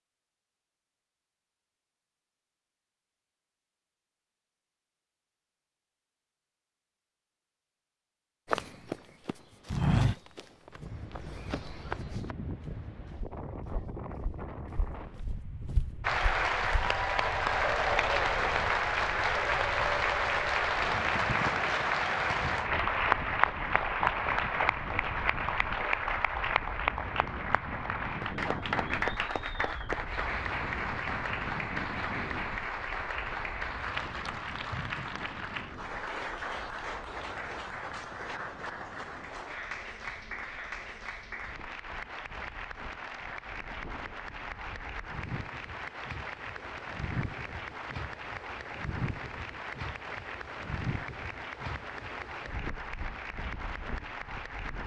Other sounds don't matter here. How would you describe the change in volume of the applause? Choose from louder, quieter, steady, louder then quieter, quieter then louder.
quieter.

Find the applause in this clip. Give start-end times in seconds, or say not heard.
16.0-54.8.